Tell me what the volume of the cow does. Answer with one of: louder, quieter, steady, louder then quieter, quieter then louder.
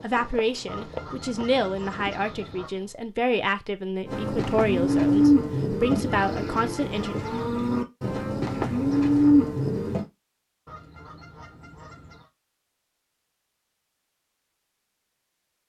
quieter then louder.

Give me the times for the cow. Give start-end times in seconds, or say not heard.
4.0-10.1.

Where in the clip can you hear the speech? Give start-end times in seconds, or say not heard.
0.0-7.2.